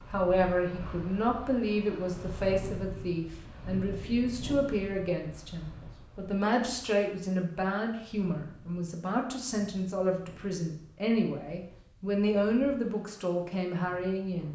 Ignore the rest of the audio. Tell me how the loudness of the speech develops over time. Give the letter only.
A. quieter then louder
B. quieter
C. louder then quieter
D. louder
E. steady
E.